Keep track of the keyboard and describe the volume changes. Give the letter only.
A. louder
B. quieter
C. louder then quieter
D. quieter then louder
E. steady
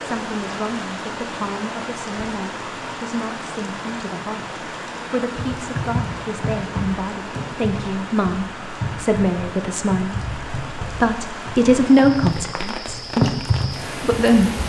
D.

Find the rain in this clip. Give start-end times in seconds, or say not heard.
0.0-14.6.